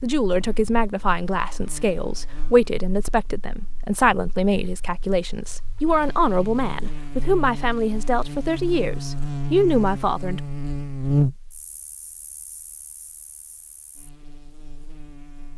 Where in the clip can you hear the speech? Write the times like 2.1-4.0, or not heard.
0.0-10.4.